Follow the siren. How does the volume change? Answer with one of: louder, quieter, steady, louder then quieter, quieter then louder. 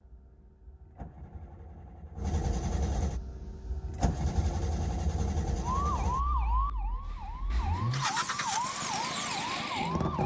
quieter then louder.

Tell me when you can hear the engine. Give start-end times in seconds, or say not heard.
0.0-10.2.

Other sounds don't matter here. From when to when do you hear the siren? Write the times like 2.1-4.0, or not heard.
5.6-10.2.